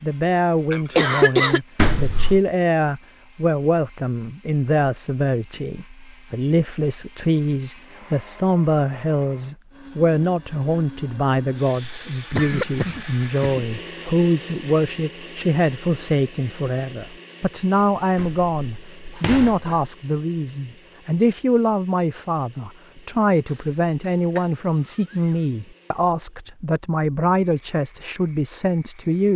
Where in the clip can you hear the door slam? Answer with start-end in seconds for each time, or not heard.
1.8-2.4, 18.1-19.9.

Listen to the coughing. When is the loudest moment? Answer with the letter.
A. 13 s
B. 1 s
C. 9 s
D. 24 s
B.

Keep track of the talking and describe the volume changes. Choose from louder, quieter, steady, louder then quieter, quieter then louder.
steady.